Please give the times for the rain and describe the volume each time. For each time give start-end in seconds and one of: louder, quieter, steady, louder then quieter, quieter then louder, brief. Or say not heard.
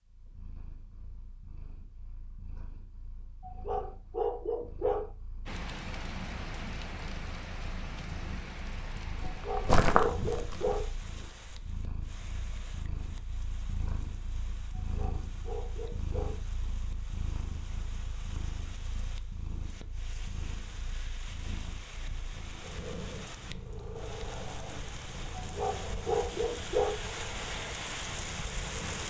5.5-29.0 quieter then louder.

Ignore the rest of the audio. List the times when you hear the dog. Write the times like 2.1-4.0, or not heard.
3.4-5.1, 9.2-10.9, 14.8-16.4, 25.4-27.0.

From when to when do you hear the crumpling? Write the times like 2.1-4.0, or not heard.
9.3-10.8.